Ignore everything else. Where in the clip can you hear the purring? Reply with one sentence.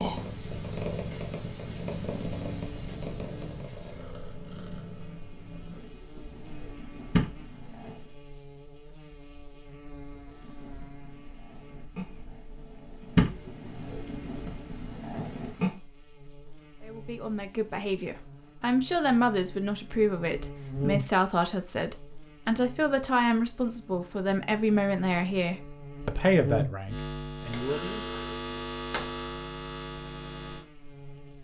The purring can be heard from 0.0 to 8.2 s and from 10.2 to 15.8 s.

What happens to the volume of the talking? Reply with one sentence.
The loudness of the talking stays about the same.